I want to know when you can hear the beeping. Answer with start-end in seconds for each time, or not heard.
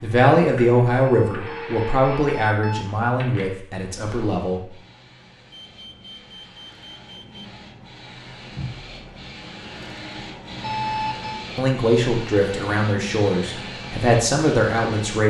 0.9-2.9, 5.5-7.5, 10.6-11.4.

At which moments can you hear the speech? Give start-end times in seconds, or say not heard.
0.0-4.6, 11.6-15.2.